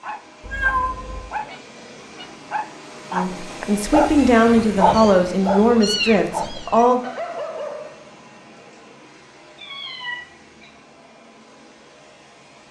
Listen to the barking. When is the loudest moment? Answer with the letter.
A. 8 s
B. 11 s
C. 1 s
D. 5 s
D.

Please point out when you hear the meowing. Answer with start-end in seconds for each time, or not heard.
0.4-1.2, 4.9-6.8, 9.6-10.7.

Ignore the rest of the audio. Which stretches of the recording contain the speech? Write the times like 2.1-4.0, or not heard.
3.1-7.0.